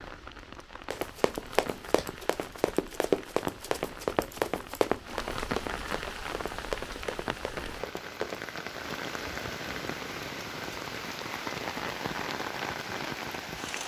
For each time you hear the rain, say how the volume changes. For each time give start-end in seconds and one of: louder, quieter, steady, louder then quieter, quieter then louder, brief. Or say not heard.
0.0-13.8 louder.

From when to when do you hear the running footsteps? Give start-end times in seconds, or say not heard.
0.9-8.6.